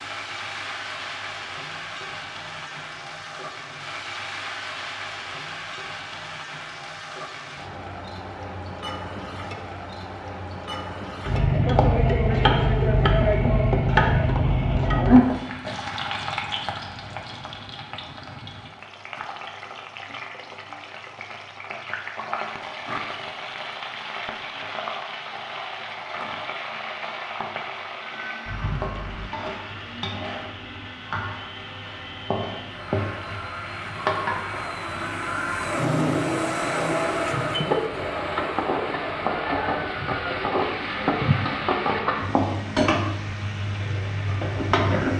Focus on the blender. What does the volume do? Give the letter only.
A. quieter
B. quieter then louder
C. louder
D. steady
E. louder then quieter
E.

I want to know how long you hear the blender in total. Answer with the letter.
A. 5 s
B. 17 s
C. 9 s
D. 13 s
B.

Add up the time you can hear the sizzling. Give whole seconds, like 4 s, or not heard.
45 s.